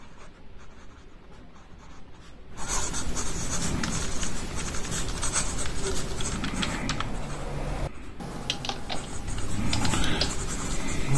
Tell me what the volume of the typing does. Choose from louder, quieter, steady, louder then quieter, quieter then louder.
louder.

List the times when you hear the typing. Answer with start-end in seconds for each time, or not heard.
3.6-11.1.